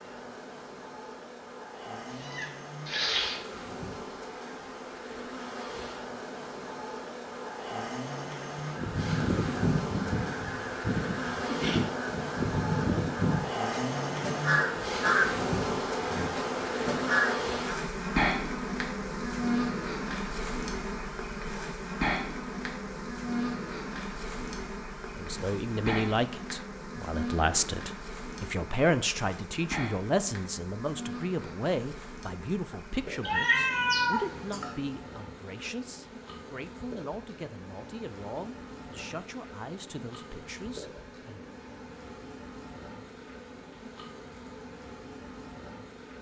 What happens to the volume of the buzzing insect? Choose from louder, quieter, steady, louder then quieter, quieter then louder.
louder then quieter.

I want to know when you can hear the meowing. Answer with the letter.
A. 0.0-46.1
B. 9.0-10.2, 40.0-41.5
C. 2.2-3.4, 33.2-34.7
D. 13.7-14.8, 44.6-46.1
C.